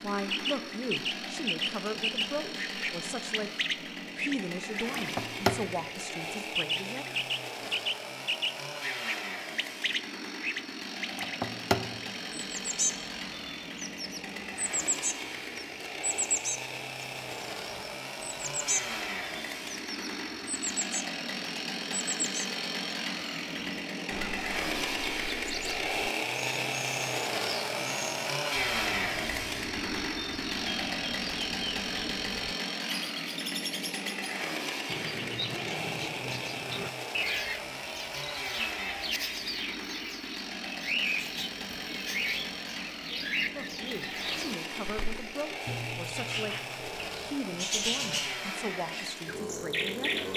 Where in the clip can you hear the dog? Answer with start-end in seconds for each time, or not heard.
not heard.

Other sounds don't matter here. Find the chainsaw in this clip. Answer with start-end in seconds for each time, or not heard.
0.0-50.3.